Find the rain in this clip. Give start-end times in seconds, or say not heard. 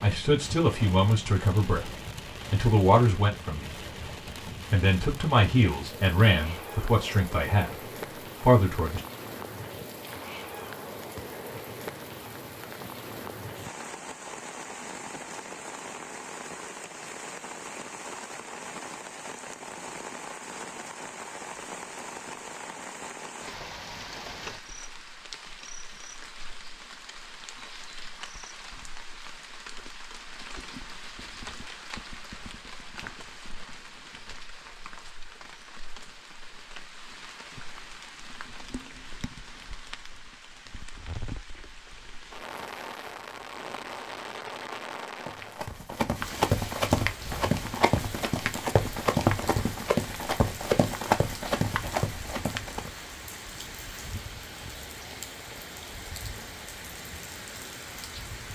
0.0-58.4.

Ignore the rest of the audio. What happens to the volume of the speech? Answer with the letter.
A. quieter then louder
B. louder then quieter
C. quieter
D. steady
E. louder
D.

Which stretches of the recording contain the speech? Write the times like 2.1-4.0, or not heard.
0.0-3.8, 4.7-9.0.